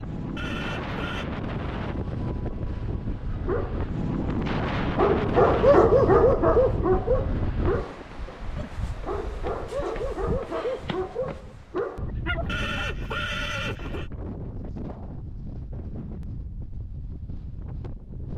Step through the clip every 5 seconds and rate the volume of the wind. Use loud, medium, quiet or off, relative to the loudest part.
loud, loud, medium, medium.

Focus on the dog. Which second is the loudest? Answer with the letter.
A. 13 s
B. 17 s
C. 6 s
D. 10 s
C.